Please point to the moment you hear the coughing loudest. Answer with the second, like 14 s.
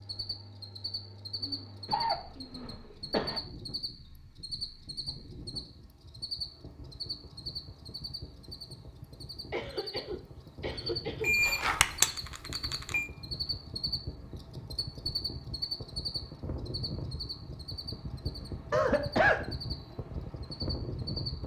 19 s.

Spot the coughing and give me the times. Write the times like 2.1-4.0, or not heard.
1.4-3.4, 9.5-11.4, 18.7-19.4.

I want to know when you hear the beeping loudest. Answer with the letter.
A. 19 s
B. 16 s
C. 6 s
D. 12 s
D.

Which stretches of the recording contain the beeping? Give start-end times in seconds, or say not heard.
11.2-13.1.